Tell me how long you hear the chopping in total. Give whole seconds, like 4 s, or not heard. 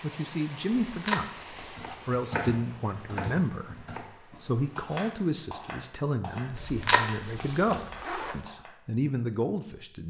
7 s.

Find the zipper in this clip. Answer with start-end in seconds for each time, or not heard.
0.8-2.0, 6.5-8.3.